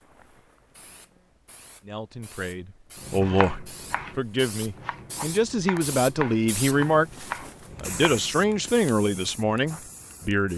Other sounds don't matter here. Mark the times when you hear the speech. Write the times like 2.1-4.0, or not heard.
1.8-10.5.